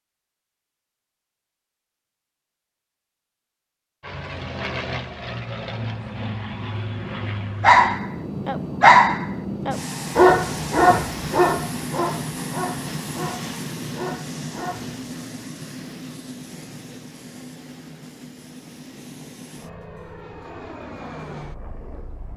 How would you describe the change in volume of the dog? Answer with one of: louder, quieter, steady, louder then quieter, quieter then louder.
quieter.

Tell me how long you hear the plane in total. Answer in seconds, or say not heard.
18 s.